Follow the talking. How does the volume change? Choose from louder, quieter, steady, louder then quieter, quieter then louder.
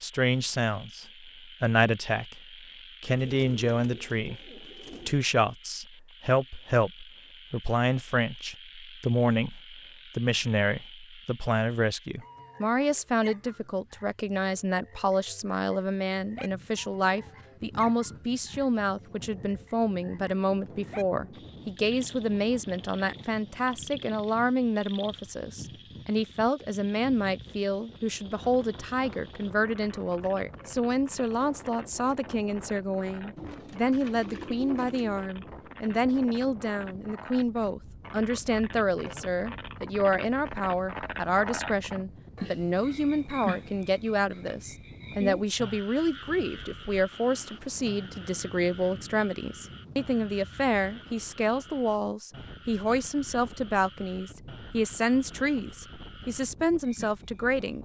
steady.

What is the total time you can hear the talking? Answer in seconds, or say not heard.
58 s.